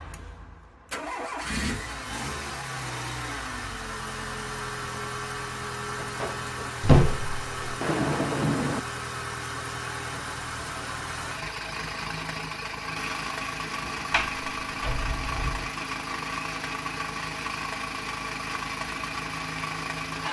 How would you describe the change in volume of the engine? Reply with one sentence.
The loudness of the engine stays about the same.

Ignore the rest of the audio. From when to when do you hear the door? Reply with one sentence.
The door can be heard from 6.0 to 7.8 s and from 14.1 to 15.7 s.